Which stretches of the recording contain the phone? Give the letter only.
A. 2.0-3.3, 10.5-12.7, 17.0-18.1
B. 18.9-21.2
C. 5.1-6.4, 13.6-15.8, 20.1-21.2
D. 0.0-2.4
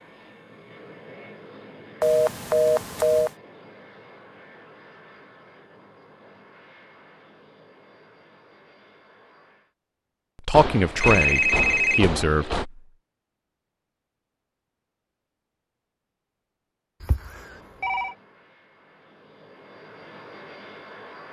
A.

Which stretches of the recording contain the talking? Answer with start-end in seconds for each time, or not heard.
10.4-12.8.